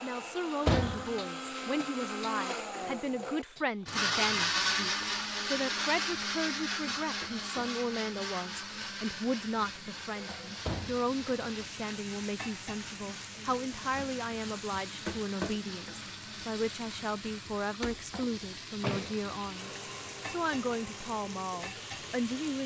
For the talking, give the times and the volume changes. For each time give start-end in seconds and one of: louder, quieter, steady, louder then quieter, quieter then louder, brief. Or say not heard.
0.0-22.6 steady.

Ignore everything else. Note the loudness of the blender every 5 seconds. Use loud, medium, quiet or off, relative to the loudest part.
loud, loud, quiet, quiet, quiet.